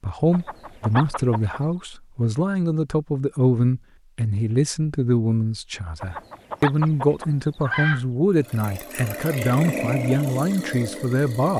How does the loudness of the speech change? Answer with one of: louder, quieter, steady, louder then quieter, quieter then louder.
steady.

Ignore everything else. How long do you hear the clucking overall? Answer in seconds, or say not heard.
3 s.